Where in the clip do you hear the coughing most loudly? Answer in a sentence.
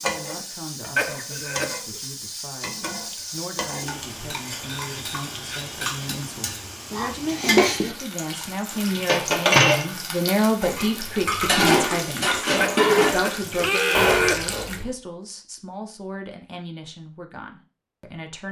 The loudest moment of the coughing is at 14 seconds.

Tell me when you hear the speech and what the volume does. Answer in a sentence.
You can hear the speech from 0.0 to 18.4 s, getting louder then quieter.